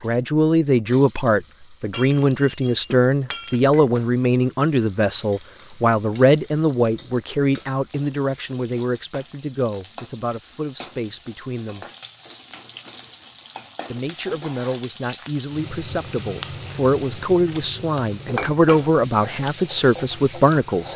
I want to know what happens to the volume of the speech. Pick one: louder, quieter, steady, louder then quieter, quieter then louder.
quieter then louder.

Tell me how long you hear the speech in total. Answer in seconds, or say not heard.
19 s.